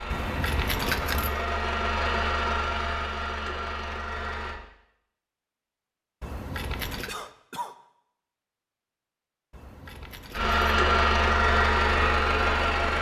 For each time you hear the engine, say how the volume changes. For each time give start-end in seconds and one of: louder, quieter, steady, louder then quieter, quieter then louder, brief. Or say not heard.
0.0-4.6 louder then quieter
10.3-12.9 brief.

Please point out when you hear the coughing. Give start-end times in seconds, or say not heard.
7.0-7.8.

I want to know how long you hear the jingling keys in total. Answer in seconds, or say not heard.
3 s.